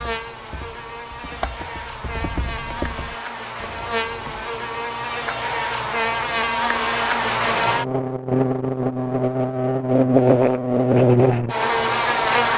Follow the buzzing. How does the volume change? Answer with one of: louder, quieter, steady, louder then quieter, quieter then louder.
louder.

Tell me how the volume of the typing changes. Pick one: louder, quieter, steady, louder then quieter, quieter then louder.
louder then quieter.